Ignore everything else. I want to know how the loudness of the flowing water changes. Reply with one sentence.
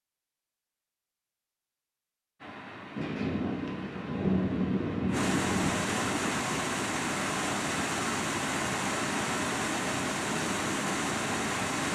The loudness of the flowing water goes up.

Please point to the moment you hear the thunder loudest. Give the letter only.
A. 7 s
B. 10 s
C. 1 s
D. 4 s
D.